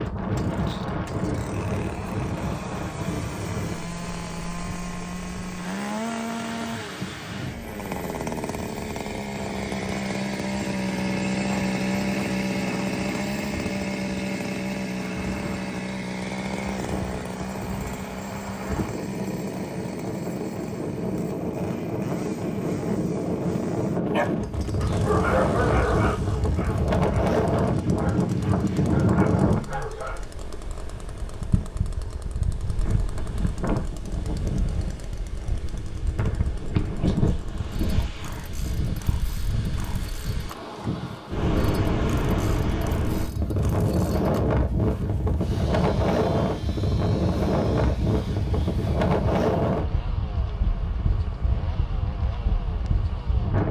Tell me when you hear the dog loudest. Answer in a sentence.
The loudest moment of the dog is at 25 seconds.